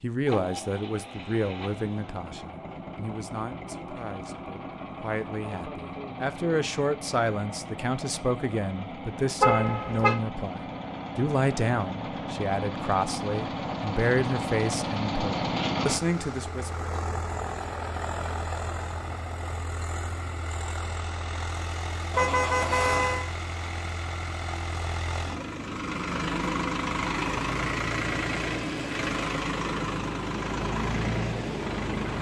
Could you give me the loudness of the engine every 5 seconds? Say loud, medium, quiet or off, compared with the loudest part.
medium, medium, loud, loud, medium, loud, loud.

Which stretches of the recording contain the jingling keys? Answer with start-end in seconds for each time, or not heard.
not heard.